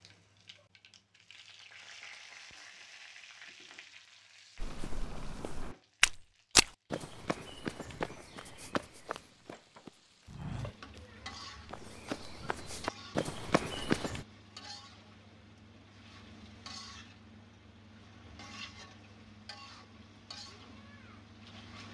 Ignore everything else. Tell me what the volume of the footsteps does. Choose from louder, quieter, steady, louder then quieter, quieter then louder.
quieter then louder.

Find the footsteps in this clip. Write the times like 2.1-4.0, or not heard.
4.6-14.2.